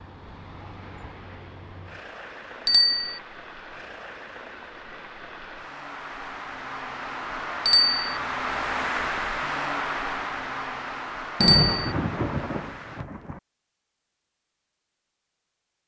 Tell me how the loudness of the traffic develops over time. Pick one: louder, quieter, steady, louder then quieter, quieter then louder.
louder then quieter.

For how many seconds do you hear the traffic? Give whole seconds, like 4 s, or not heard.
13 s.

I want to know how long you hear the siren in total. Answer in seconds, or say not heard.
not heard.